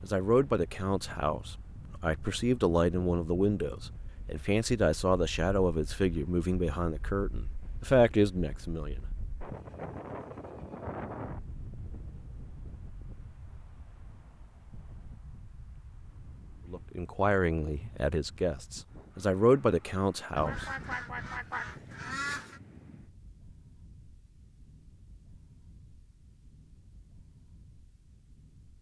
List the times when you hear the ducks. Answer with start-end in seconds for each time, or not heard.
20.4-22.6.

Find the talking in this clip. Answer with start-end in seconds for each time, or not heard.
0.0-9.1, 16.7-20.6.